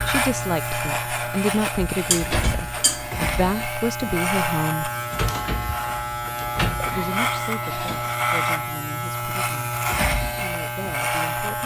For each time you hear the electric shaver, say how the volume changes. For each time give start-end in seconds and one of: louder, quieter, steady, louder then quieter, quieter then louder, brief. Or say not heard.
0.0-11.6 steady.